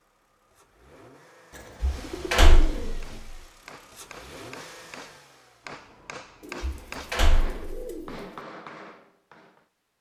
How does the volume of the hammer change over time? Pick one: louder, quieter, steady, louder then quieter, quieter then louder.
louder.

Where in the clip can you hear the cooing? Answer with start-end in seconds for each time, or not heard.
1.5-3.2, 6.4-8.2.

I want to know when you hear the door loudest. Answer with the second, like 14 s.
2 s.